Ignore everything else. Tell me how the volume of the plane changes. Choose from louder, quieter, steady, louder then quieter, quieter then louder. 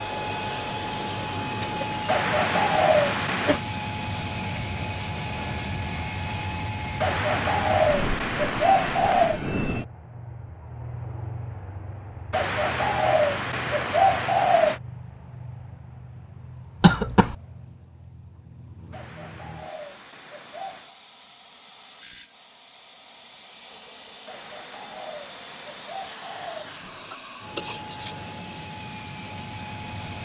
quieter then louder.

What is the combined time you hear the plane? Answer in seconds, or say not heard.
30 s.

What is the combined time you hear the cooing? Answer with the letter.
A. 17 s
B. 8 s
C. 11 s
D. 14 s
C.